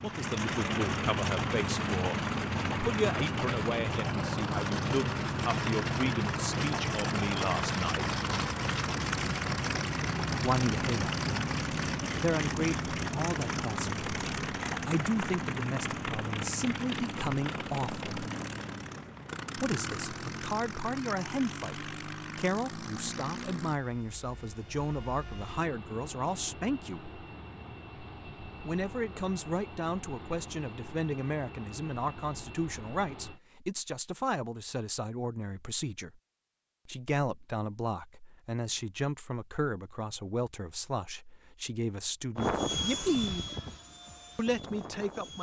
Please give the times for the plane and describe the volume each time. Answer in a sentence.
You can hear the plane from 0.0 to 33.4 s, getting quieter; and briefly from 42.4 to 45.3 s.